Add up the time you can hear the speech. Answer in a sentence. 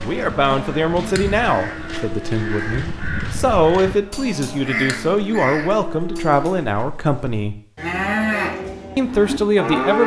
The speech can be heard for 9 seconds in total.